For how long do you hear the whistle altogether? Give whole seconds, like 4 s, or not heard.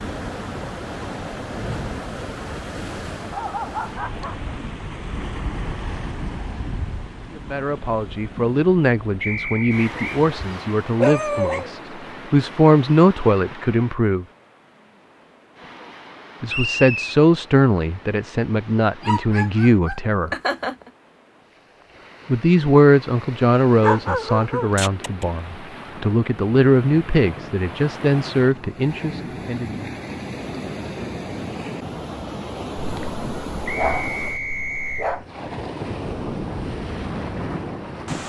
3 s.